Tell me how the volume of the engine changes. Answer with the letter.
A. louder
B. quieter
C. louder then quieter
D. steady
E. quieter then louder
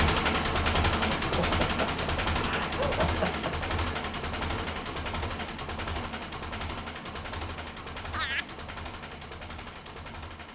B.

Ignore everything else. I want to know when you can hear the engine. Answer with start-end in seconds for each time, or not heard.
0.0-10.5.